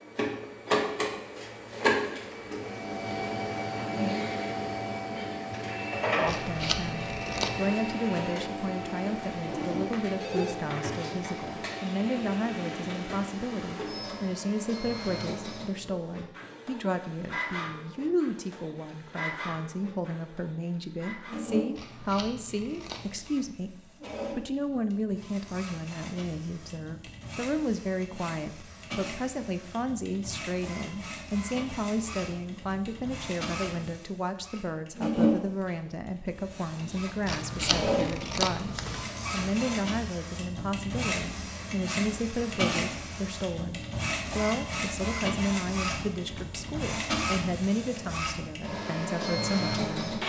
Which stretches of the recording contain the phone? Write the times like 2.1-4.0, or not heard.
9.5-10.6.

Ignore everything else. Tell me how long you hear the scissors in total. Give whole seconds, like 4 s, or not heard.
5 s.